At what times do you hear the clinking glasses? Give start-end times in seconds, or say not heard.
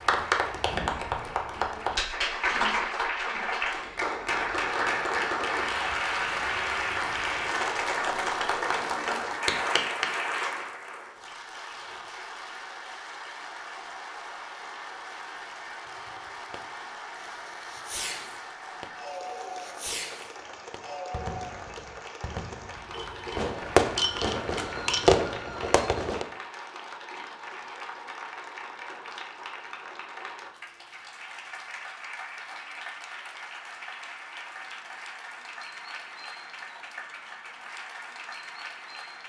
22.9-25.1.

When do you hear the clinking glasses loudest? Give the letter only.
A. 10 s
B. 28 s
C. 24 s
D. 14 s
C.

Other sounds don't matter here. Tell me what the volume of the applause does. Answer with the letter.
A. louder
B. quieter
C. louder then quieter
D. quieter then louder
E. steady
B.